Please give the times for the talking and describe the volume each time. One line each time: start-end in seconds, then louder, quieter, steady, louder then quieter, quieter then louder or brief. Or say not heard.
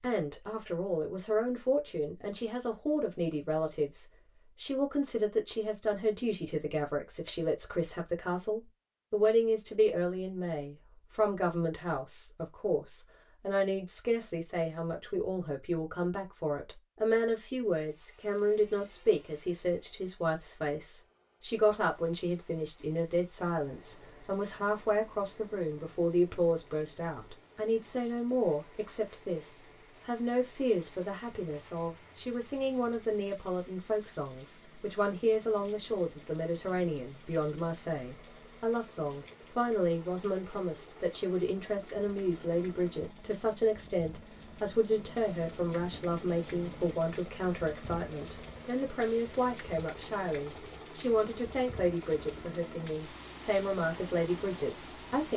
0.0-55.3 steady.